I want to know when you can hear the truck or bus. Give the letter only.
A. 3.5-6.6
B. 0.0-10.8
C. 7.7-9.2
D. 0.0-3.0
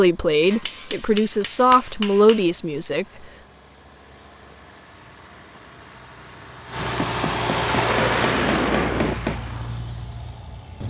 B.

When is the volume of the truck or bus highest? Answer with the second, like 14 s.
8 s.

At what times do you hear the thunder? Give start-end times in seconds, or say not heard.
7.7-9.2.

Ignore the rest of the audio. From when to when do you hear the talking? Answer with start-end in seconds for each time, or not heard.
0.0-3.0.